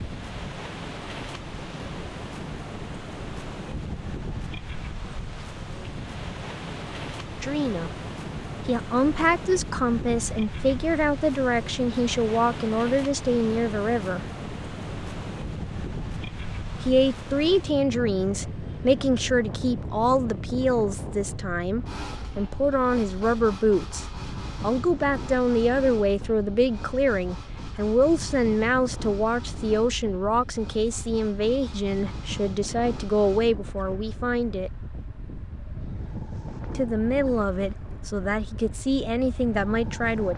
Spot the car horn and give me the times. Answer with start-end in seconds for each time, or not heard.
not heard.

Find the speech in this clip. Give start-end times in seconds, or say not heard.
7.4-8.0, 8.7-14.2, 16.8-34.7, 36.8-40.3.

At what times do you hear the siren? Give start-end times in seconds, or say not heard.
not heard.